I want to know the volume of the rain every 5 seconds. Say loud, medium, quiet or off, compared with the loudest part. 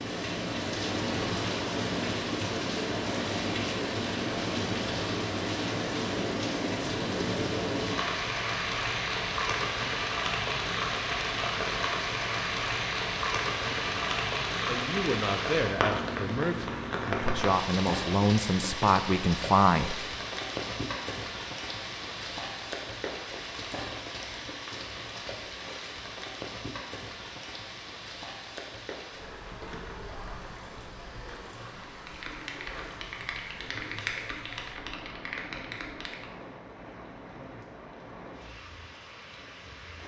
loud, loud, loud, loud, medium, medium, quiet, quiet.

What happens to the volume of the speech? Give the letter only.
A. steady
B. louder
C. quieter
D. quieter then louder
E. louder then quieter
B.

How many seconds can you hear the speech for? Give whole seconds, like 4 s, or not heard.
6 s.